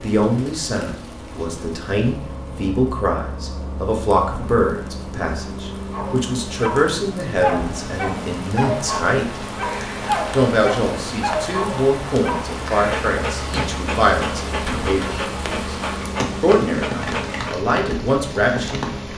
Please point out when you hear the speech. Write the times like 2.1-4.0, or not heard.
0.0-9.4, 10.3-15.8, 16.4-18.9.